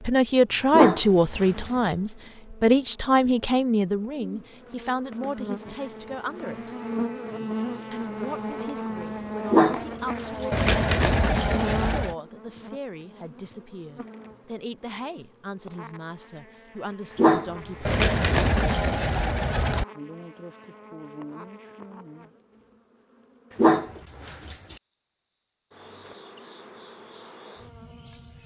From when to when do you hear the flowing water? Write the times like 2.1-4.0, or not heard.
not heard.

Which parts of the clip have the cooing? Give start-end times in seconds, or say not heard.
10.5-12.2, 17.9-19.9.